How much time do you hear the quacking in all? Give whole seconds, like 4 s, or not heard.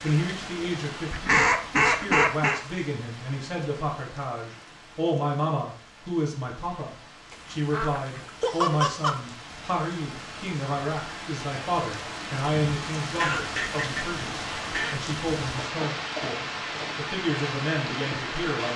6 s.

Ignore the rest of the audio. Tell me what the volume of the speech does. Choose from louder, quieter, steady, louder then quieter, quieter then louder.
steady.